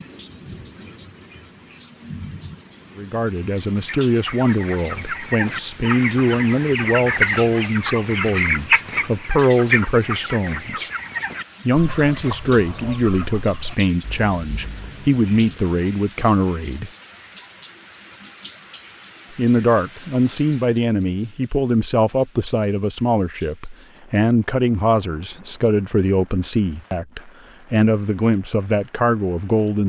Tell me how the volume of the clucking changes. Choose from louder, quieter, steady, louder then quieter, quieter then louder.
louder then quieter.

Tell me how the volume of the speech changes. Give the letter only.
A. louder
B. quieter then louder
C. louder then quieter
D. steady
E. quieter
D.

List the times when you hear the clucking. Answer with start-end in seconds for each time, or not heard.
3.8-16.0.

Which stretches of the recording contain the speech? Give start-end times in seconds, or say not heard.
3.0-10.9, 11.7-16.9, 19.4-29.8.